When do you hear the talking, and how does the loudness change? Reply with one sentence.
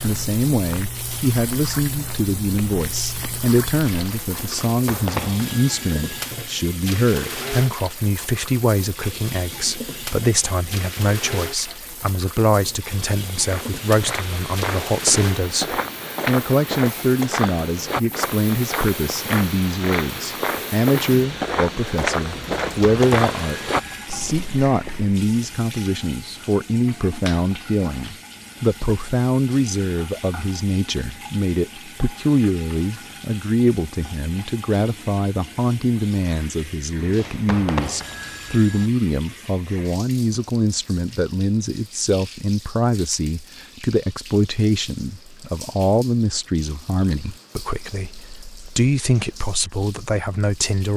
The talking can be heard from 0.0 to 50.9 s, at a steady volume.